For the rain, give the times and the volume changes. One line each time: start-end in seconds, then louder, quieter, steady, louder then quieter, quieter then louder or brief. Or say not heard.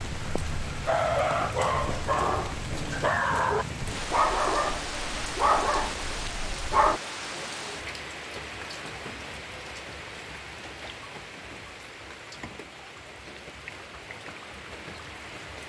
0.0-15.6 quieter.